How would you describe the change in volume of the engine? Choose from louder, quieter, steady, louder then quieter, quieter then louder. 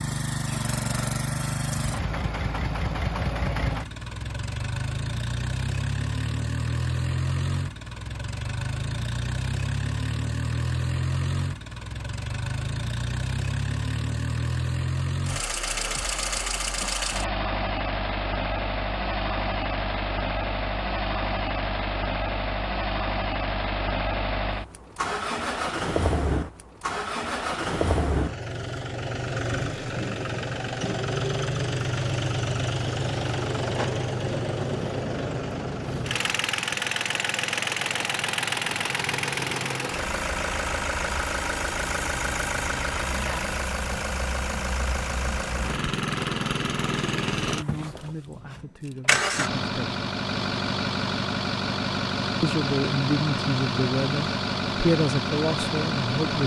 steady.